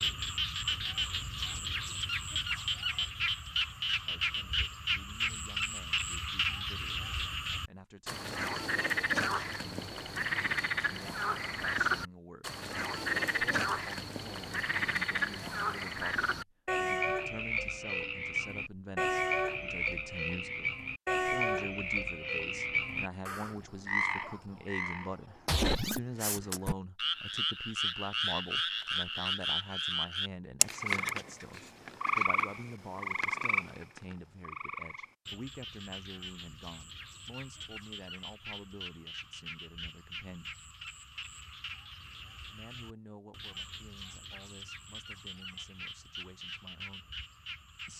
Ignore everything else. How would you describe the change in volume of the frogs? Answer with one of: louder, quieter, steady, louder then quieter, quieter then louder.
quieter.